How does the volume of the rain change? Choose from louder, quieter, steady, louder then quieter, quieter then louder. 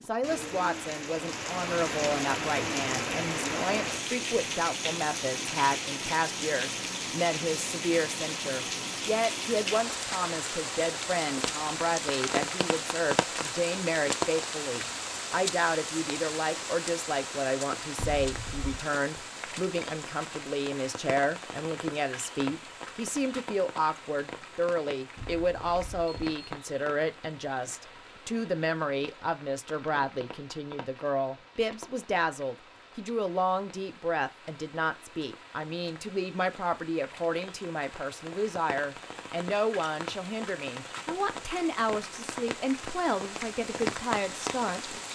quieter then louder.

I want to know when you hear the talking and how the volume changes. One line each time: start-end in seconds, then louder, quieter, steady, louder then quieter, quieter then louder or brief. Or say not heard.
0.1-45.0 steady.